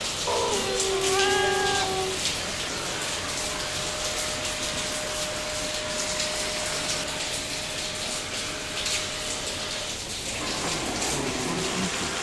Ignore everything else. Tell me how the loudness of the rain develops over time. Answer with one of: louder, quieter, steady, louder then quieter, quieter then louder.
steady.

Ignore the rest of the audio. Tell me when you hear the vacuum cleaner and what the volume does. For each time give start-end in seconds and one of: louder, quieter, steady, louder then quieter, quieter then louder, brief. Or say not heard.
0.0-12.1 steady.